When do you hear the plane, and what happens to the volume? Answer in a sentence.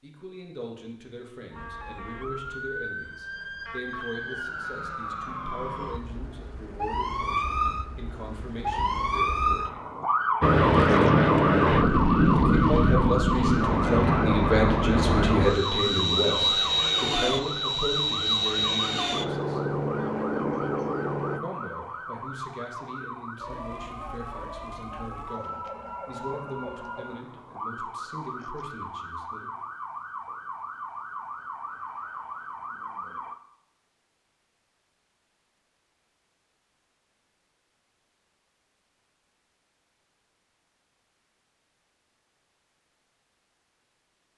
You can hear the plane from 10.4 to 21.4 s, getting quieter.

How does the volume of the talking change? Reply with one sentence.
The volume of the talking goes up, then down.